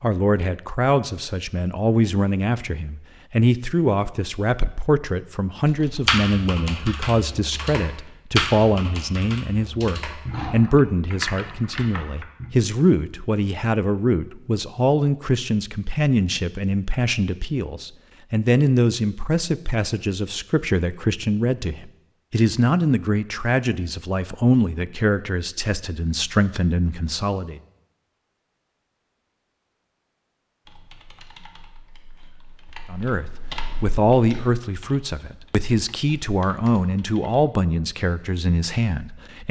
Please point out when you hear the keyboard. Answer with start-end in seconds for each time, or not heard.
5.7-12.5, 30.6-37.5.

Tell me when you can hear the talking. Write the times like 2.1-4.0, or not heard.
0.0-27.6, 32.9-39.4.